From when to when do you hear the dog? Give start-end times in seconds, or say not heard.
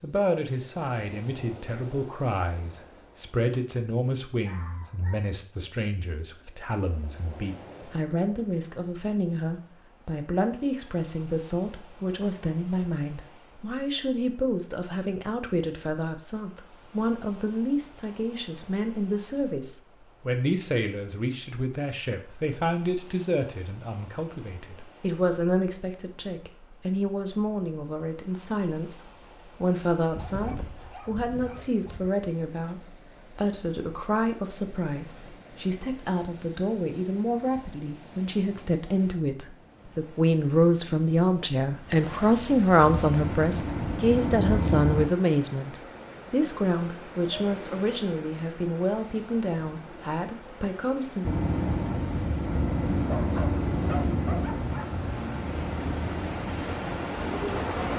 4.4-5.7, 30.1-32.1, 53.0-55.0.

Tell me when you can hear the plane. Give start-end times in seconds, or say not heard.
42.8-45.1, 51.2-57.9.